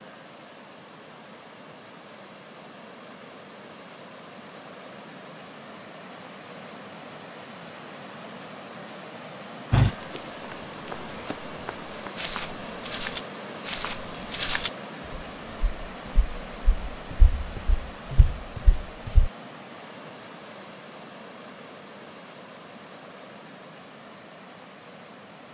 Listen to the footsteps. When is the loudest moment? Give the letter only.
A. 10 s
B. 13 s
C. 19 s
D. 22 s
A.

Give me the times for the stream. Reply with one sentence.
The stream can be heard from 0.0 to 25.4 s.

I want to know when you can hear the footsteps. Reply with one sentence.
You can hear the footsteps from 9.7 to 19.3 s.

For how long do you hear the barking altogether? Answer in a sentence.
You can't hear the barking here.